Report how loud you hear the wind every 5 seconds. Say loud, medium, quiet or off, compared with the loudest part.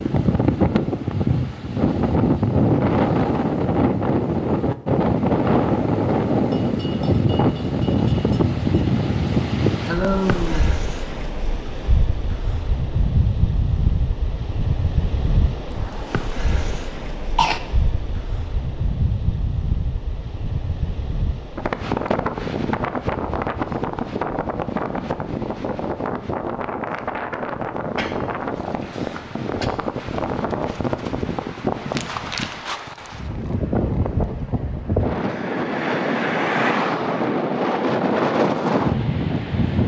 loud, loud, medium, medium, medium, medium, medium, loud.